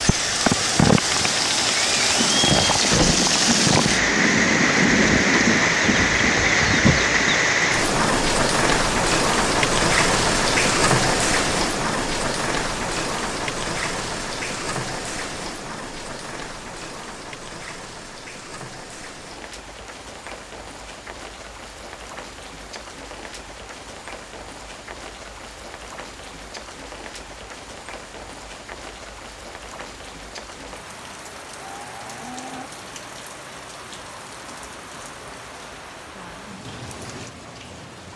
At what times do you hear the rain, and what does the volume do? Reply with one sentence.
You can hear the rain from 0.0 to 38.1 s, getting quieter.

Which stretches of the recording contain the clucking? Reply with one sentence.
The clucking can be heard from 2.1 to 7.4 s.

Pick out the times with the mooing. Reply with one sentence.
You can hear the mooing from 31.6 to 32.7 s.